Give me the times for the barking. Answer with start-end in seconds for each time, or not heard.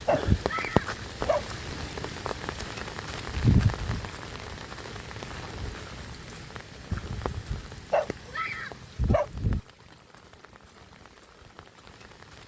0.1-1.4, 7.9-9.3.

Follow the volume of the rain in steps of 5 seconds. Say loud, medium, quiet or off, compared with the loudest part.
loud, medium, quiet.